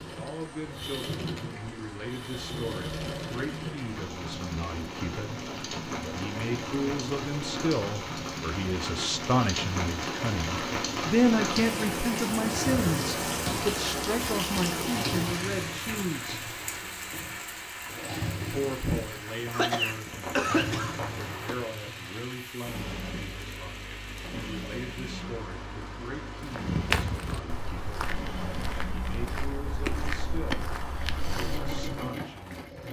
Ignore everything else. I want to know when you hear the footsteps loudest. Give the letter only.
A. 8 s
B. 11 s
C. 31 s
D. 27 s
D.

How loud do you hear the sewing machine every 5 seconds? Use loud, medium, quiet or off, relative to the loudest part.
loud, loud, loud, loud, loud, medium, loud.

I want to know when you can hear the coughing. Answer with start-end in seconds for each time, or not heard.
19.5-21.6.